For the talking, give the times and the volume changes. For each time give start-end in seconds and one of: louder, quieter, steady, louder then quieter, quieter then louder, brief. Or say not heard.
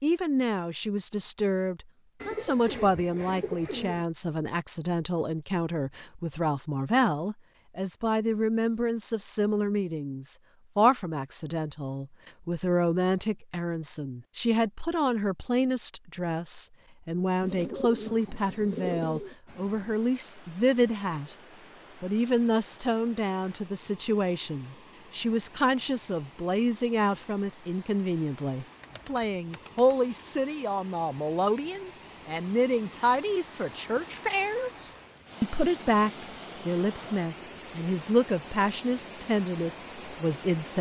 0.0-21.4 steady
22.0-40.7 steady.